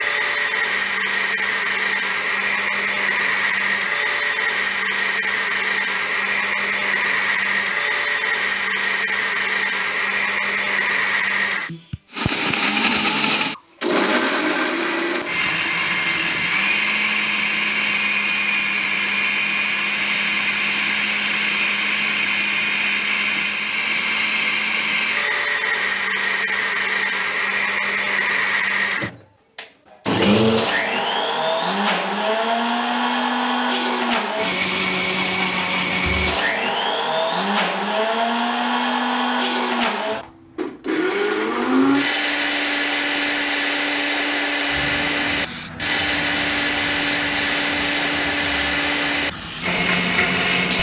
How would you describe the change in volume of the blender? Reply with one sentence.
The volume of the blender stays about the same.